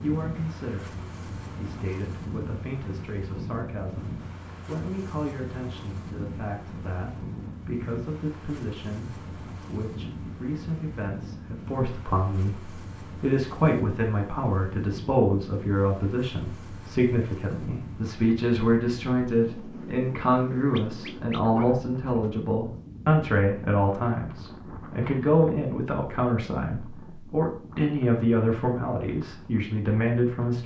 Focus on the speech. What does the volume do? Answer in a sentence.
The loudness of the speech goes up.